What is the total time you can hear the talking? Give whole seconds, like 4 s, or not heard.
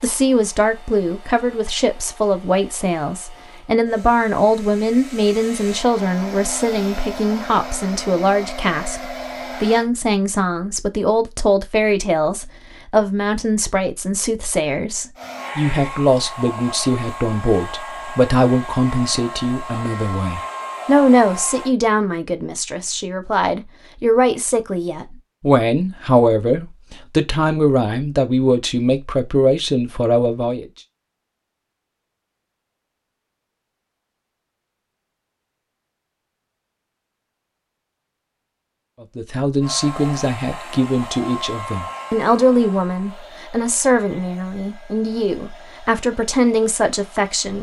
39 s.